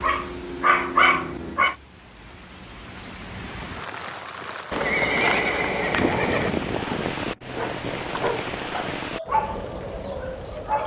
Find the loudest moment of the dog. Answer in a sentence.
The loudest moment of the dog is at 1 second.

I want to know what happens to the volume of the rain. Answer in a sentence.
The volume of the rain goes up.